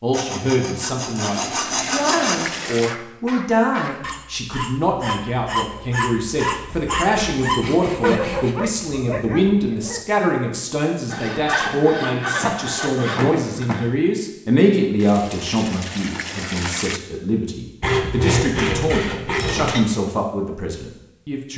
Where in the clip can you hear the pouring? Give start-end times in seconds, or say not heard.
1.2-3.0, 14.9-17.0.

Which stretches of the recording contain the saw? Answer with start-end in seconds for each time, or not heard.
0.1-2.5, 6.7-8.6, 11.1-13.9, 17.8-19.9.